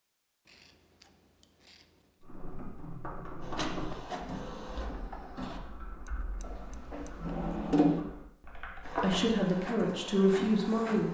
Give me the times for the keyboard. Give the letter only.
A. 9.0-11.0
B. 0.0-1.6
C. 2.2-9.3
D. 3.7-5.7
C.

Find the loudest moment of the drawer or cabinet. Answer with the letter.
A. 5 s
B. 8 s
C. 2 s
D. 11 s
B.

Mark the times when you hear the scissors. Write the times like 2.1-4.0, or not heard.
0.5-2.2, 6.0-7.5.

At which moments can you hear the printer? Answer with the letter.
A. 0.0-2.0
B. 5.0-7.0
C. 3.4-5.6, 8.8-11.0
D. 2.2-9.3
C.